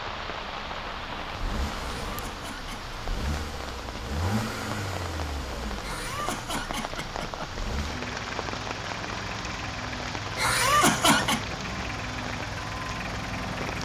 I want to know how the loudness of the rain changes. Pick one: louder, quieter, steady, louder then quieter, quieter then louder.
steady.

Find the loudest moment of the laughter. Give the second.
11 s.